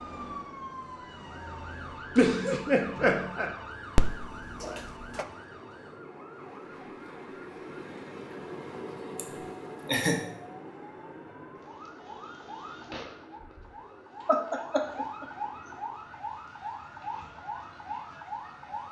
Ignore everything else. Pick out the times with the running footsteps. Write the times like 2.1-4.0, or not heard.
not heard.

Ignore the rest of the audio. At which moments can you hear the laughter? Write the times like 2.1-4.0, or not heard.
2.1-3.5, 9.2-10.2, 14.2-15.2.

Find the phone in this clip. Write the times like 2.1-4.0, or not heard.
4.0-5.2.